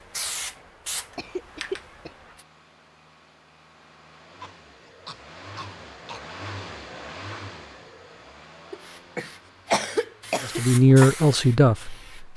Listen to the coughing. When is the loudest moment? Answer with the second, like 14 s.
10 s.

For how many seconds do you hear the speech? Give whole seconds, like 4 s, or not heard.
2 s.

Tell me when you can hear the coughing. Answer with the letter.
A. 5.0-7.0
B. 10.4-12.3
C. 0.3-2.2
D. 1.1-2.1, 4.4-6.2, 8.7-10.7
D.